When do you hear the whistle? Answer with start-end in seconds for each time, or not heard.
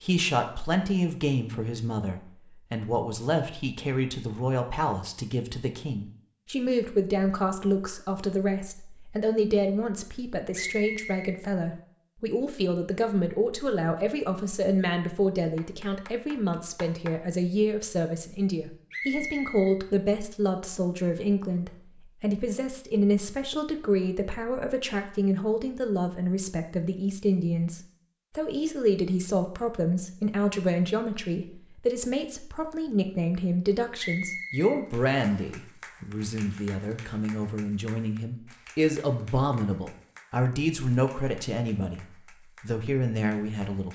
10.5-11.3, 18.9-19.8, 34.0-35.5.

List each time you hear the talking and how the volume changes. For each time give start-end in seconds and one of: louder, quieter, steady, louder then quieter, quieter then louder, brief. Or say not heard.
0.0-43.9 steady.